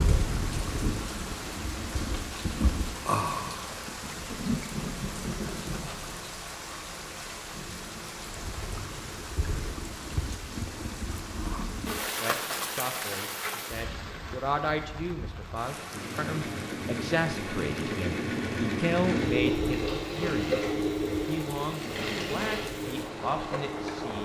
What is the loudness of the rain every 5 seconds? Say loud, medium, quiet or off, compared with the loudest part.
loud, medium, loud, medium, medium.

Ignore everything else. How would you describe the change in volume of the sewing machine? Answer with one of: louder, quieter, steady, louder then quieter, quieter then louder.
louder then quieter.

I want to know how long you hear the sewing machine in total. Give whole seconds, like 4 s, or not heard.
8 s.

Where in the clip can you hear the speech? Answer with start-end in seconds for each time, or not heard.
12.2-24.1.